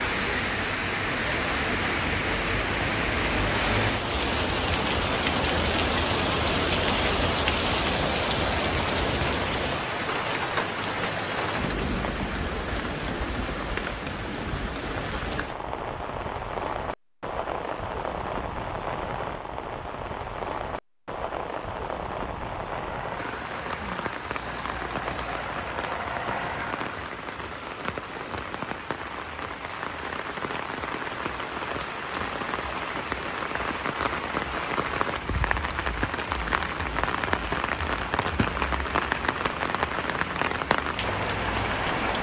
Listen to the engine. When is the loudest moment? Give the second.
26 s.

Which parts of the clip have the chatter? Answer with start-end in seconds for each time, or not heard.
not heard.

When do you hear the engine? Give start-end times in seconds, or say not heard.
22.1-27.1.